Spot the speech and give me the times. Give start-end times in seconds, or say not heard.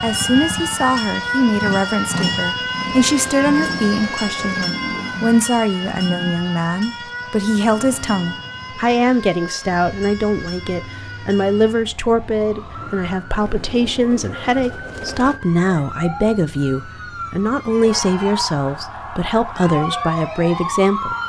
0.0-21.1.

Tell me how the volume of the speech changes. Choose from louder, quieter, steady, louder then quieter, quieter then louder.
steady.